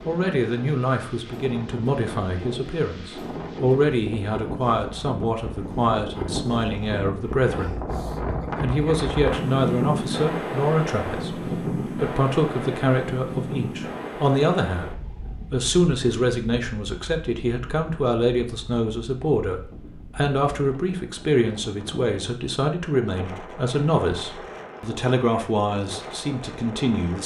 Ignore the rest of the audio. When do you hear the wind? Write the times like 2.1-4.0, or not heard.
0.0-27.2.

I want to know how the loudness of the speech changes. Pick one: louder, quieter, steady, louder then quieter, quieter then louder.
steady.